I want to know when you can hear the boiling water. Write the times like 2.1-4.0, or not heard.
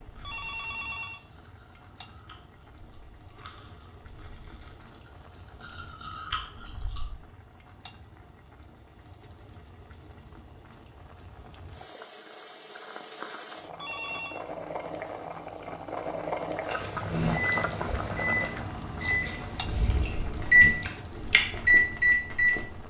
0.0-22.8.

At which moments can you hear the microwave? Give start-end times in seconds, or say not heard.
17.1-22.8.